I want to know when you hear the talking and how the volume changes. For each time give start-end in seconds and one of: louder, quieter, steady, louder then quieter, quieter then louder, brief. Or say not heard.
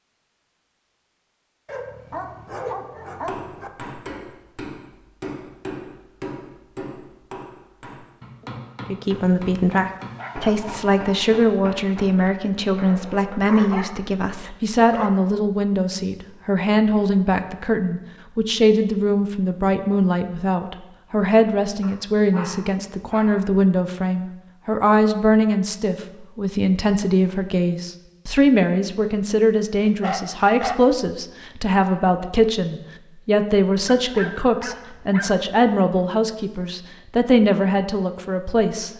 8.8-38.9 steady.